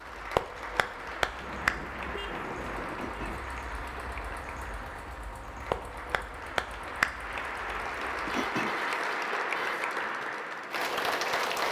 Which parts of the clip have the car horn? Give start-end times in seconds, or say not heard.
1.4-3.4, 8.2-9.8.